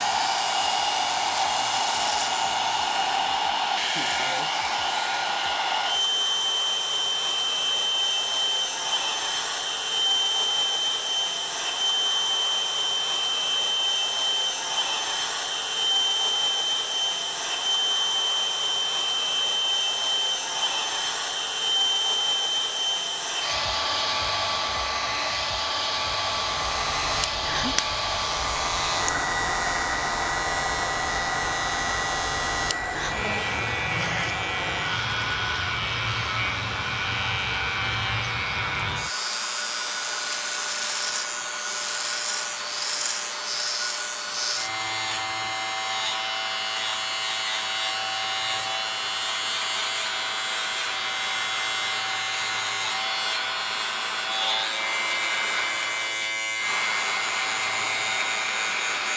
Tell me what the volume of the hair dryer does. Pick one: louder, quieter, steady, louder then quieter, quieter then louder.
quieter.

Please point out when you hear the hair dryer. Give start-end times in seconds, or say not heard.
0.0-59.1.